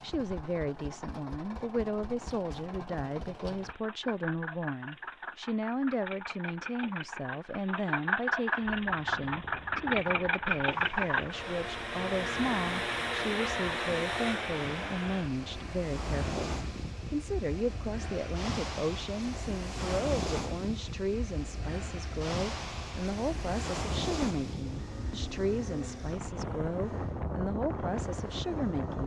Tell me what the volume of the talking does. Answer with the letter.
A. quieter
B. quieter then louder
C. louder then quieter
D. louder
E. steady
E.